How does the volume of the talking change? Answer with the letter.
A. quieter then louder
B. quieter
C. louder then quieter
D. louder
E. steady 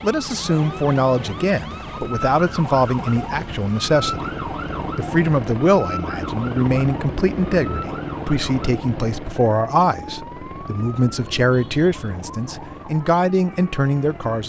E.